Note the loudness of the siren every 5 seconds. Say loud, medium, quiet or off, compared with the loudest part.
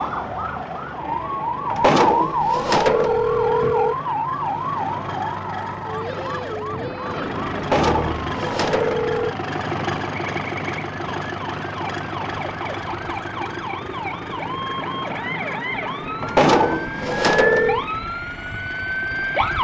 loud, medium, medium, loud.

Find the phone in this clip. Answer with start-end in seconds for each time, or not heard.
1.6-4.0, 7.5-9.3, 16.2-17.9.